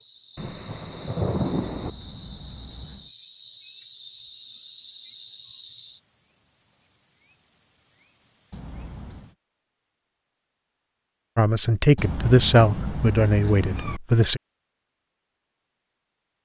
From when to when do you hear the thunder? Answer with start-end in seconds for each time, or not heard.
0.3-1.9.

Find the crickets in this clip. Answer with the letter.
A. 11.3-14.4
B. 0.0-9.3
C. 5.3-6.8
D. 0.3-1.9
B.